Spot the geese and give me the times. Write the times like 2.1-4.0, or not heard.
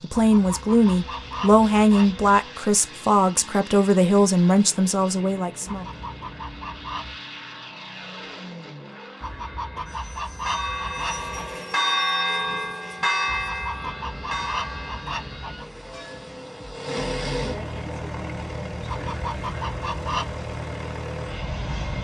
0.1-2.4, 5.7-7.2, 9.2-11.6, 13.2-15.7, 18.9-20.4.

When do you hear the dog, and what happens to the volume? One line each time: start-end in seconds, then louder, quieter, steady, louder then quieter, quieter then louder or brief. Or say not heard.
not heard.